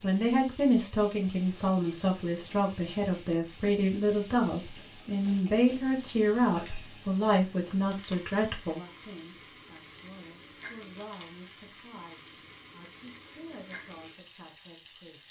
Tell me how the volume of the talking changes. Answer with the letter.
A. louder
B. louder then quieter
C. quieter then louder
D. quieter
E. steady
D.